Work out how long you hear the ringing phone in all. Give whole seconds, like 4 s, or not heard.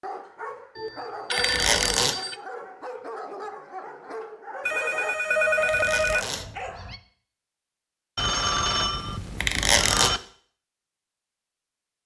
5 s.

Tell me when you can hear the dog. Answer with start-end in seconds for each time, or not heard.
0.0-7.0.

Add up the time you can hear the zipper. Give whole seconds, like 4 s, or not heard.
2 s.